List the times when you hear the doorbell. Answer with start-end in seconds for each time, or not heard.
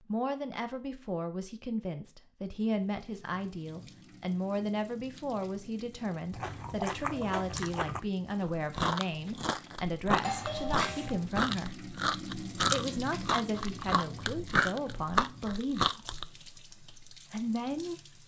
10.2-11.2.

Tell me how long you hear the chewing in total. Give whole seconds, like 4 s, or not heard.
10 s.